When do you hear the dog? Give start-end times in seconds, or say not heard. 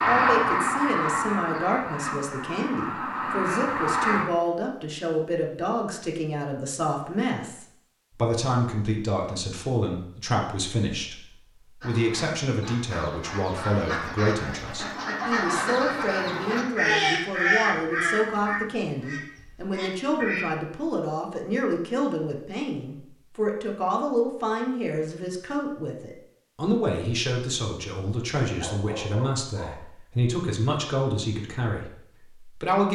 28.6-29.9.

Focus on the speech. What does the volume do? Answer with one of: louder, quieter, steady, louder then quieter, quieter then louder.
steady.